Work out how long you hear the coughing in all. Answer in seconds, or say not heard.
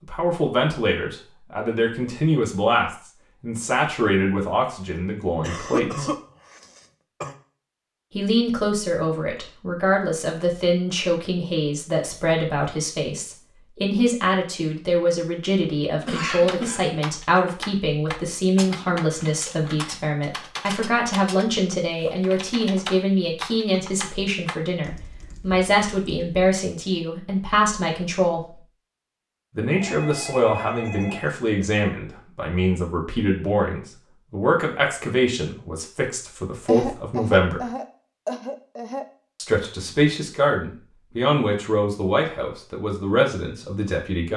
5 s.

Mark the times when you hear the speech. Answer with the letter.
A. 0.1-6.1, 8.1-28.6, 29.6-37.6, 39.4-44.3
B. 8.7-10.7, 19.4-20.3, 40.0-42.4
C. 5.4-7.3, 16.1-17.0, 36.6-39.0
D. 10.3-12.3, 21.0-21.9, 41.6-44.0
A.